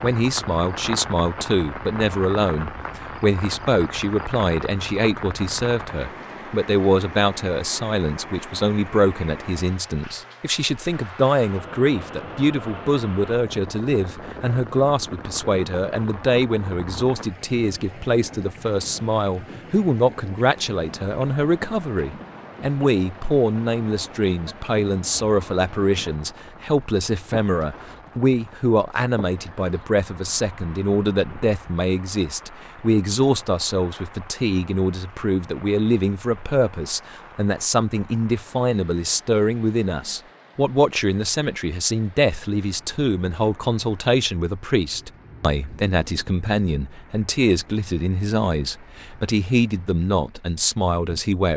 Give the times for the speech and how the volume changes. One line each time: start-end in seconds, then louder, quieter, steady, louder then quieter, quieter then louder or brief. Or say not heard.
0.0-51.5 steady.